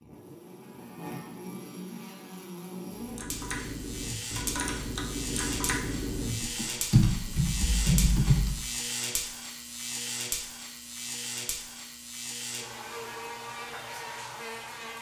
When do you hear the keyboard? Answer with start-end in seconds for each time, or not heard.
2.9-8.7.